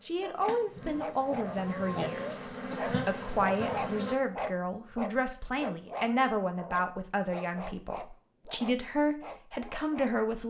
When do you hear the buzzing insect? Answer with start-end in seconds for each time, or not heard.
0.0-4.2.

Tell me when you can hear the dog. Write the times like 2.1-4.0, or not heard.
0.2-10.2.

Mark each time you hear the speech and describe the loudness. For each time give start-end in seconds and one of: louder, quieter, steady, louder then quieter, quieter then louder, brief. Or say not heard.
0.0-10.4 steady.